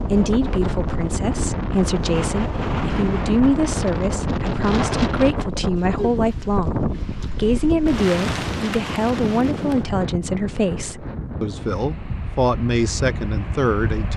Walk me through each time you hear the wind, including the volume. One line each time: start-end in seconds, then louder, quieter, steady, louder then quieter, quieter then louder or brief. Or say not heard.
0.0-14.1 quieter.